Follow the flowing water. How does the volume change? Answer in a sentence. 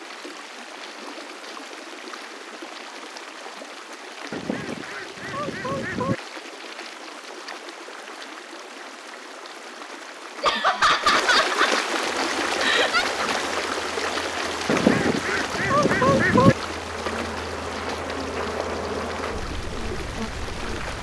The volume of the flowing water goes up, then down.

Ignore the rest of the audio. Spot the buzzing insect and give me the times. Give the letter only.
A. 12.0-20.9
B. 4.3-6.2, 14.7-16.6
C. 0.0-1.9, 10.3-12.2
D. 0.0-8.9
A.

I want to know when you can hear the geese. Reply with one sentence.
The geese can be heard from 4.3 to 6.2 s and from 14.7 to 16.6 s.